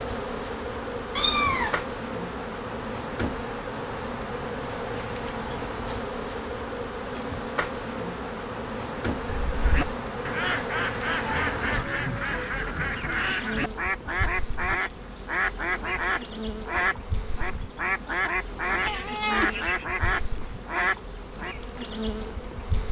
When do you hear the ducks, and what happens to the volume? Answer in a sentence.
The ducks can be heard from 9.6 to 21.6 s, at a steady volume.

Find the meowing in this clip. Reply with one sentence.
The meowing can be heard from 1.1 to 1.8 s, from 9.2 to 9.7 s and from 18.9 to 19.9 s.